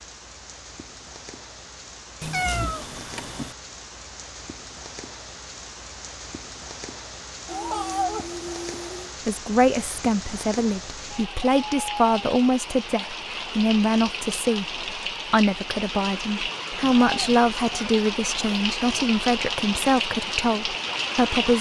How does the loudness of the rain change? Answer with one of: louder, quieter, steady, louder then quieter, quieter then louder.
louder.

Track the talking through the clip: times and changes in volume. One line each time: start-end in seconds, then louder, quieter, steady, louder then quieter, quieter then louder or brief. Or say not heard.
9.2-21.5 steady.